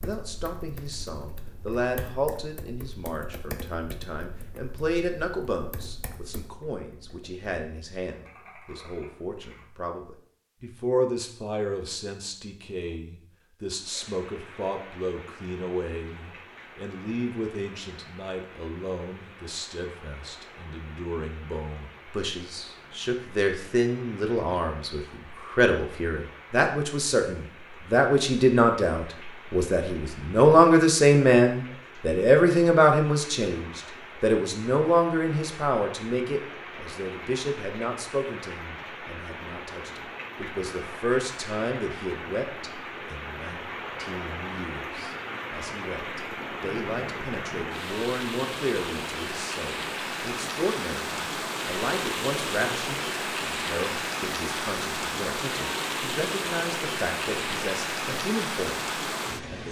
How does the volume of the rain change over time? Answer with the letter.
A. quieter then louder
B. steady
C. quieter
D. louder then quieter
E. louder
E.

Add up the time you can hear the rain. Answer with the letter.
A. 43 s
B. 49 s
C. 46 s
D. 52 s
C.